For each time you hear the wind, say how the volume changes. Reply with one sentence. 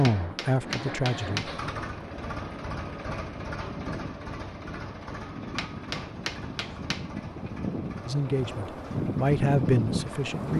You can hear the wind from 0.1 to 10.5 s, getting louder.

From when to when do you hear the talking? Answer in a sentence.
The talking can be heard from 0.0 to 1.4 s and from 8.1 to 10.5 s.